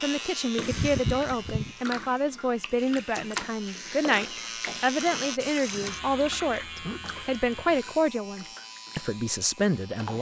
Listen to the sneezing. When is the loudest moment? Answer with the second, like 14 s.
1 s.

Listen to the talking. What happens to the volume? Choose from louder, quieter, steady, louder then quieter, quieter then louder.
steady.